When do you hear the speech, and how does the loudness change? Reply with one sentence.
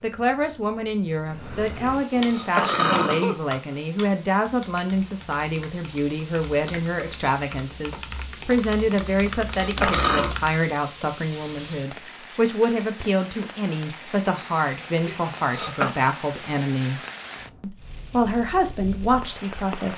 You can hear the speech from 0.0 to 17.0 s, at a steady volume; and briefly from 17.6 to 19.9 s.